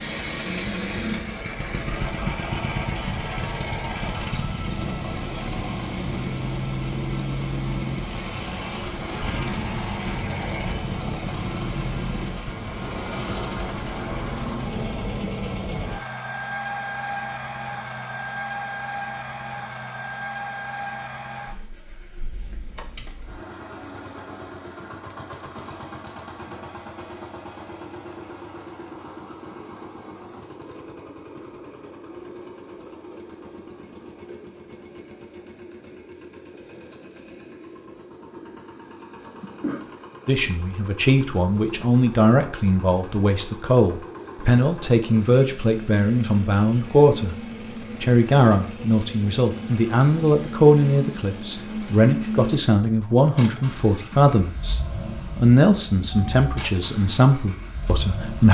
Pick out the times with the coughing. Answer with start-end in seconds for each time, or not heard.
39.2-40.0.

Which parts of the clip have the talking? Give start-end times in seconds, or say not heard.
40.2-47.4, 48.0-58.4.